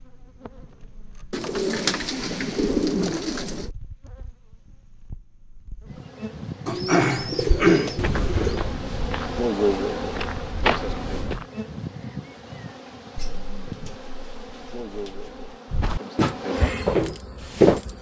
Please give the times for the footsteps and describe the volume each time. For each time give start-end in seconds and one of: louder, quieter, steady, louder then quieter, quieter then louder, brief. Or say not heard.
7.3-11.4 quieter then louder
15.7-17.8 brief.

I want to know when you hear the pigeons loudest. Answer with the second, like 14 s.
8 s.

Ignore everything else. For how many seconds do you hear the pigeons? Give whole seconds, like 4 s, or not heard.
7 s.